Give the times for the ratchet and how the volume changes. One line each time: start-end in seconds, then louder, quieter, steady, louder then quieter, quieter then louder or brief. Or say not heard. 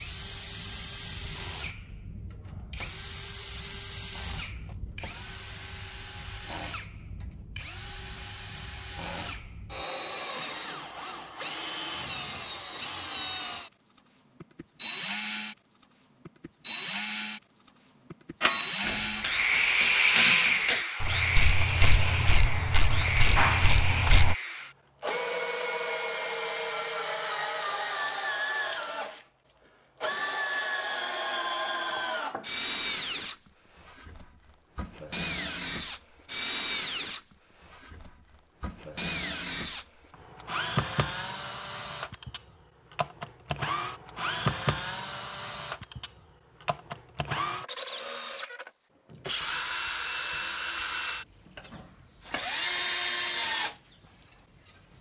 18.4-24.4 louder.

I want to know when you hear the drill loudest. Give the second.
20 s.